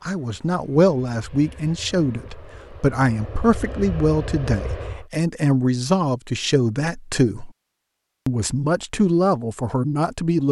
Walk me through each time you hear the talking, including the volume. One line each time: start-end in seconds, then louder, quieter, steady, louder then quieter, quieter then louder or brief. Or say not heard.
0.0-7.5 steady
8.2-10.4 brief.